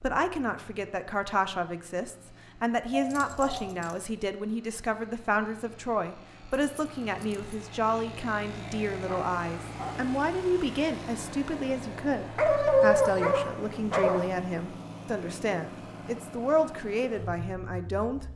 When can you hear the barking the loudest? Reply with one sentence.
The volume of the barking peaks at 13 seconds.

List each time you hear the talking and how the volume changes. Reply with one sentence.
You can hear the talking from 0.0 to 18.2 s, at a steady volume.